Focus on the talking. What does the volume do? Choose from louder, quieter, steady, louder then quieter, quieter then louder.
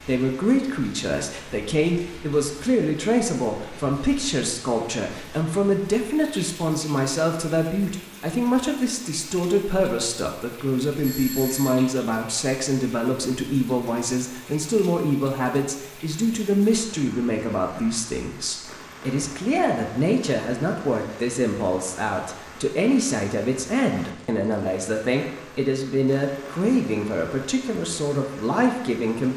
steady.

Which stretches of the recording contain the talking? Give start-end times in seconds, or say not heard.
0.1-29.3.